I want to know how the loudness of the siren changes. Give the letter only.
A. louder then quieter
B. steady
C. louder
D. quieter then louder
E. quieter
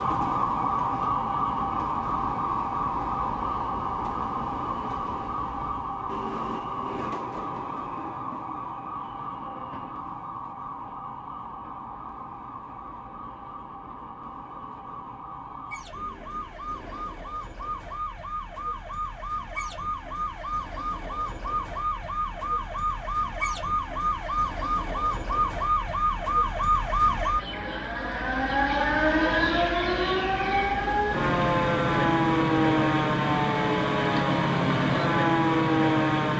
D.